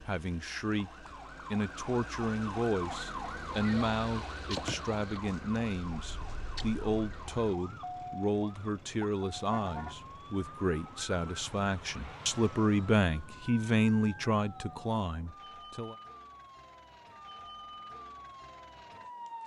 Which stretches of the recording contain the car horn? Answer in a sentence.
The car horn can be heard from 9.4 to 9.9 s.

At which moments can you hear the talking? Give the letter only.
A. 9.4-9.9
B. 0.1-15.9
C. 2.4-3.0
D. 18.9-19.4
B.